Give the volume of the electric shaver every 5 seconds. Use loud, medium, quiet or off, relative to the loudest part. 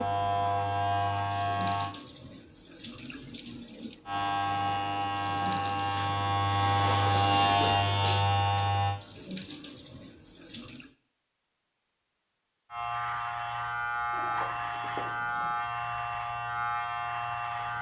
loud, loud, medium, medium.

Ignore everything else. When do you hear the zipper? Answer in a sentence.
The zipper can be heard from 14.1 to 15.6 s.